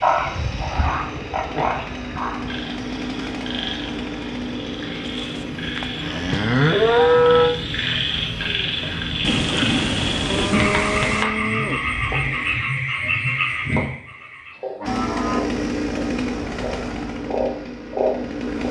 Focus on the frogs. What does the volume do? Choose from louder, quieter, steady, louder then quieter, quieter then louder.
quieter then louder.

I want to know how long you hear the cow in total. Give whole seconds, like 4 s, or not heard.
8 s.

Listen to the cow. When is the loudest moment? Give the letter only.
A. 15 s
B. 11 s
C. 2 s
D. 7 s
D.